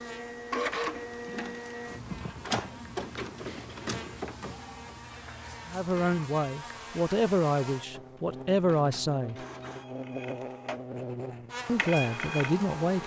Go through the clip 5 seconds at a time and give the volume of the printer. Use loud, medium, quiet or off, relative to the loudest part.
loud, quiet, loud.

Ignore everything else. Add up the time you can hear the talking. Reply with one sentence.
You can hear the talking for 5 seconds altogether.